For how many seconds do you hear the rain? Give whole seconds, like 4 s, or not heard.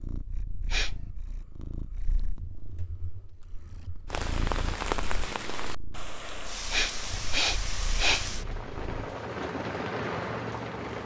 7 s.